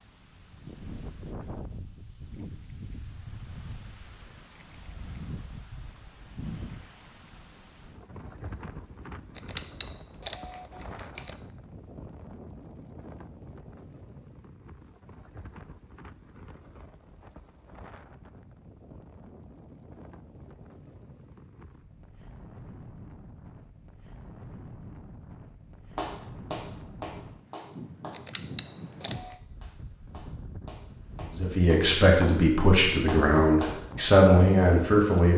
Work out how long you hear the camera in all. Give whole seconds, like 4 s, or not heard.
3 s.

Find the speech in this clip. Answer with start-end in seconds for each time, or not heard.
31.4-35.3.